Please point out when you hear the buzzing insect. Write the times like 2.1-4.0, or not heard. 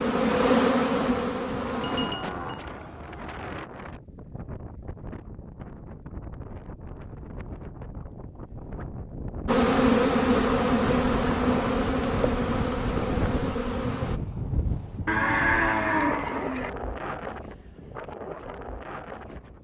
0.0-2.1, 9.4-14.2.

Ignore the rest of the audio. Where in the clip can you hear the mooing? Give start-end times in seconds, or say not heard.
1.6-3.7, 15.1-16.7.